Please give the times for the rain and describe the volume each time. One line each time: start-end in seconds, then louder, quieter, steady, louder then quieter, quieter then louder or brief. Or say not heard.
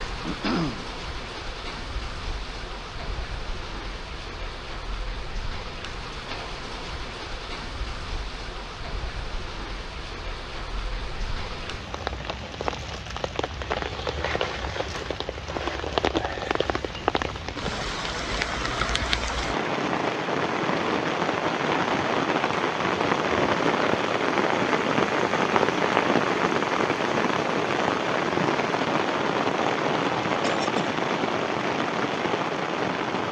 0.0-33.2 louder.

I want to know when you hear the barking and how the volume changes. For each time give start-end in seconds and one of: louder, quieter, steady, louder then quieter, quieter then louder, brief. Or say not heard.
not heard.